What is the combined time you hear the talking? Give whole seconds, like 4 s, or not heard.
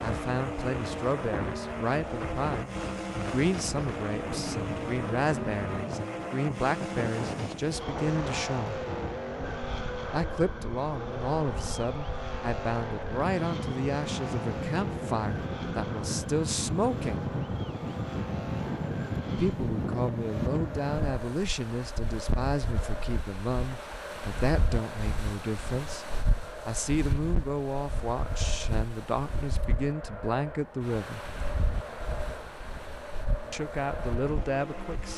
29 s.